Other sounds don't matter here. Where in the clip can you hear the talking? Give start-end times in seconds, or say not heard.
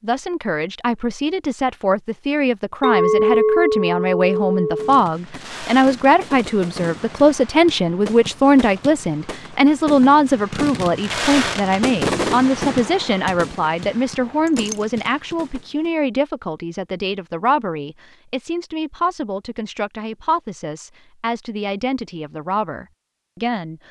0.0-23.8.